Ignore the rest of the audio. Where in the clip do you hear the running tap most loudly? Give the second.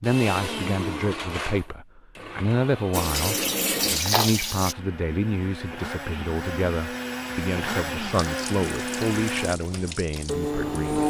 4 s.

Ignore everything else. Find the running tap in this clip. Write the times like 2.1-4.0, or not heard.
2.9-4.8, 8.1-11.0.